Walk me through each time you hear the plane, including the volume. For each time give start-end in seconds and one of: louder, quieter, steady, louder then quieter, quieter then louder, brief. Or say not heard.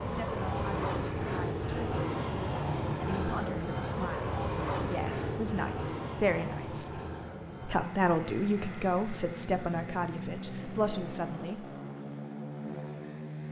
0.0-13.4 quieter.